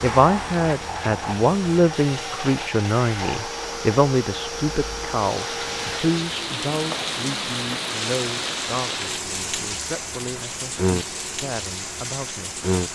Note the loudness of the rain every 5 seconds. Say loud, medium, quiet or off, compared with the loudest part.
medium, loud, loud.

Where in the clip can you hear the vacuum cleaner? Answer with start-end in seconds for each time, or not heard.
0.0-12.9.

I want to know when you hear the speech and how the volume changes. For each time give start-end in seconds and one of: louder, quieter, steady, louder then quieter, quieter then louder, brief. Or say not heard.
0.0-12.6 quieter.